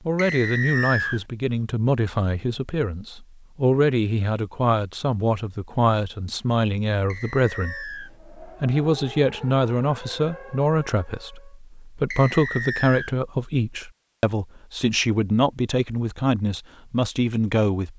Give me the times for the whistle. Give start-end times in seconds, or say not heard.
0.1-1.2, 7.1-8.1, 12.1-13.1.